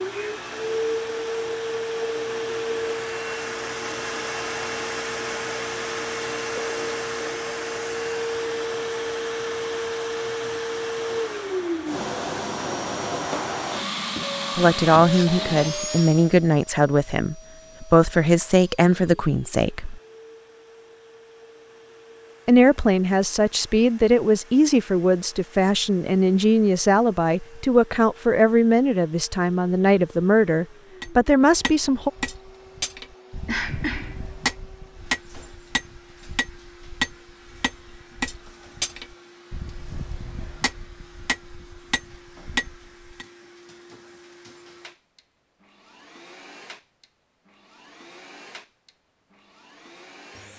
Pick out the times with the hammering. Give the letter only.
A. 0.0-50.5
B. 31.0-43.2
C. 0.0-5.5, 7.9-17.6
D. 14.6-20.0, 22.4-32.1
B.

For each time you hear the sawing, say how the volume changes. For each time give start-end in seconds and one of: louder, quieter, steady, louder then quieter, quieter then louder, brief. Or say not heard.
not heard.